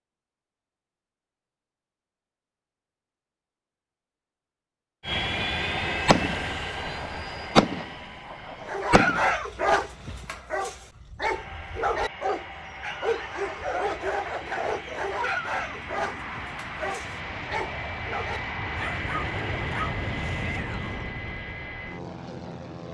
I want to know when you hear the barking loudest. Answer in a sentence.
The loudest moment of the barking is at 9 seconds.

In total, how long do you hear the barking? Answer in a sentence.
You can hear the barking for 12 seconds altogether.